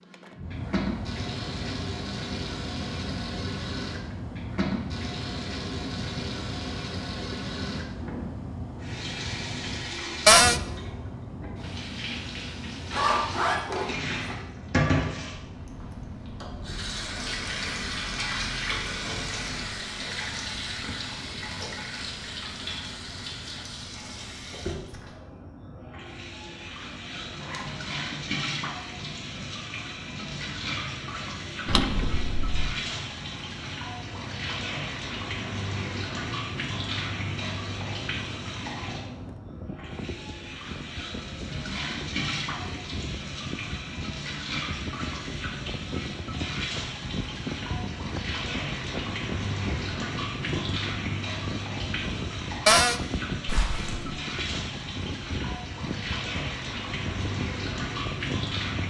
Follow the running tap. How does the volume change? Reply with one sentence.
The volume of the running tap stays about the same.